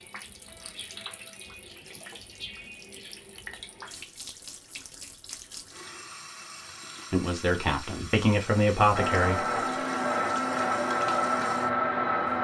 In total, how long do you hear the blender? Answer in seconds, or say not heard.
3 s.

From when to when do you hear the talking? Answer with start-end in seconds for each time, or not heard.
7.1-9.4.